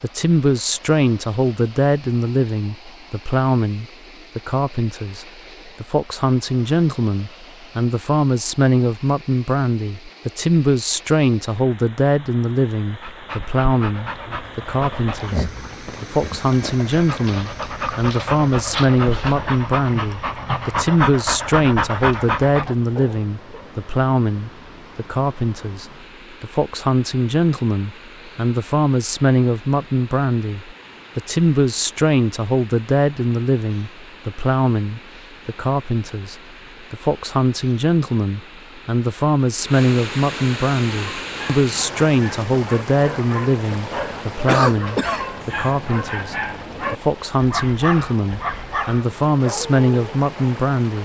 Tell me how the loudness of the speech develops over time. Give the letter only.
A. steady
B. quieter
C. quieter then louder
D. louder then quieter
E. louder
A.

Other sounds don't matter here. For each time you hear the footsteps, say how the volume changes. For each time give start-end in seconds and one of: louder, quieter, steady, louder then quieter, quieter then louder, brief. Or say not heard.
not heard.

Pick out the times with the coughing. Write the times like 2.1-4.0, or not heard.
44.5-45.7.